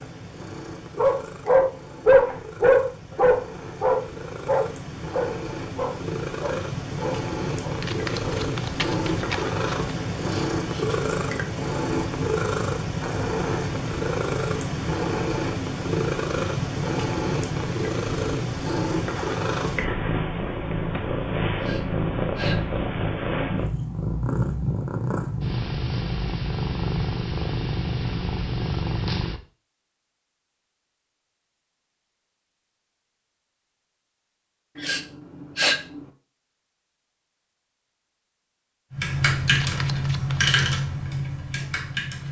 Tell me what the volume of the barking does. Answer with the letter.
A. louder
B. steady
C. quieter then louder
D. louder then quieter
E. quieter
E.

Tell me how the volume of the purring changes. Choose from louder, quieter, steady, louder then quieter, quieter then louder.
louder.